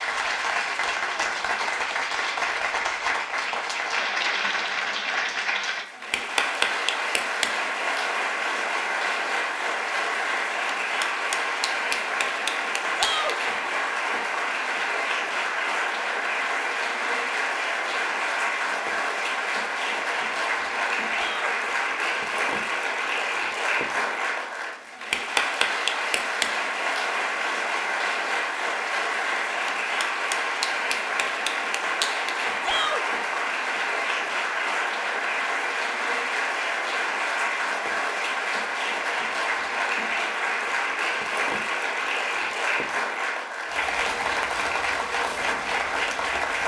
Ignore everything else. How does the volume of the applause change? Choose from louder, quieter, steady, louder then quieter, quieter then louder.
steady.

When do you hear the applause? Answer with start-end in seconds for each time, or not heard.
0.0-46.6.